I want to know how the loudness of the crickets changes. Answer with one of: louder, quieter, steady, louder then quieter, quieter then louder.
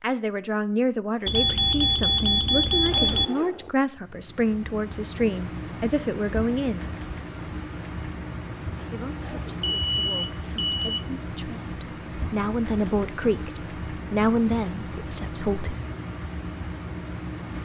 steady.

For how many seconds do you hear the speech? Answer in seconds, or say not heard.
14 s.